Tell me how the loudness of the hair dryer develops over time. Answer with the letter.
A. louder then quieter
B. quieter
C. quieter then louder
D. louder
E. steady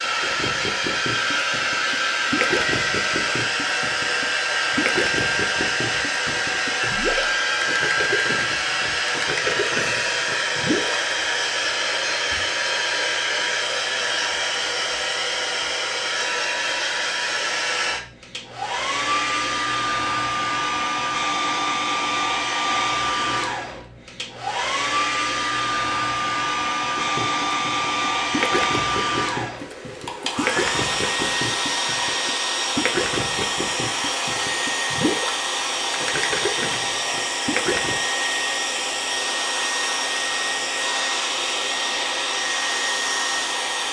E.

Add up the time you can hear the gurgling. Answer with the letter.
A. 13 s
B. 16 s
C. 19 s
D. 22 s
D.